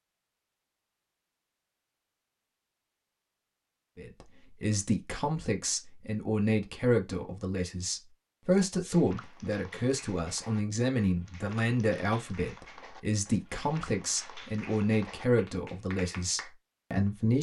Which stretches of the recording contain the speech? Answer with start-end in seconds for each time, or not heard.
4.0-17.3.